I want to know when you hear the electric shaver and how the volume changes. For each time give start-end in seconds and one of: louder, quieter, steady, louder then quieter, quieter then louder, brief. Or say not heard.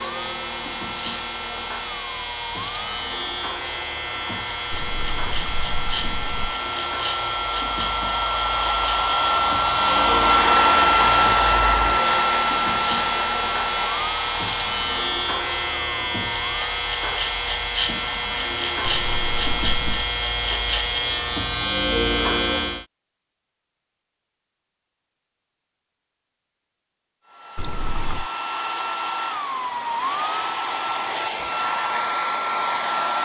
0.0-22.9 louder.